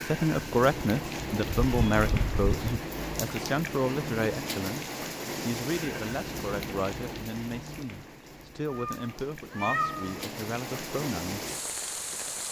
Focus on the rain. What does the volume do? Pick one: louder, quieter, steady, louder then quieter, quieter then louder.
quieter then louder.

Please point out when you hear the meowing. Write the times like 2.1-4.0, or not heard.
1.6-2.8, 8.7-10.2.